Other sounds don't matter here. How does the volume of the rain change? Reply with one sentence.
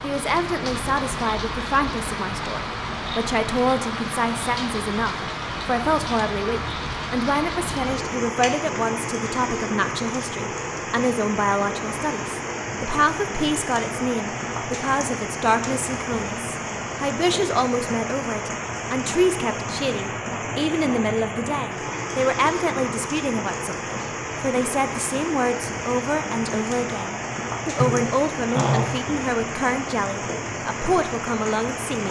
The volume of the rain stays about the same.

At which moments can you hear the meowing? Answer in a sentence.
The meowing can't be heard in this clip.